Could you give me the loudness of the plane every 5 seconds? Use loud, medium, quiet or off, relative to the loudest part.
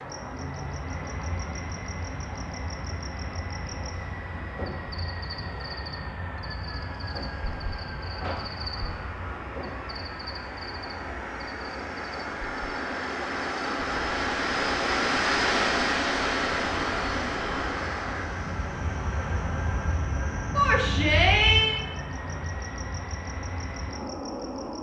medium, medium, loud, loud, medium.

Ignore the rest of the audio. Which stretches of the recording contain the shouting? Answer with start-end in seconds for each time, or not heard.
20.6-21.8.